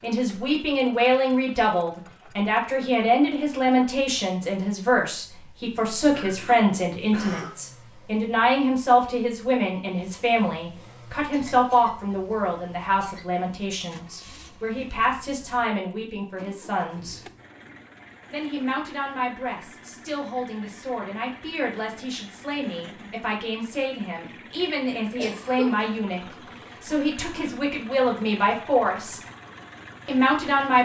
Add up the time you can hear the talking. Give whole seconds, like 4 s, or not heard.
29 s.